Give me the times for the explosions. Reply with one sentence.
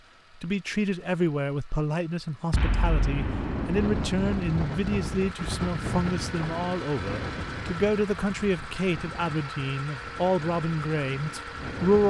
You can hear the explosions from 2.5 to 5.0 s.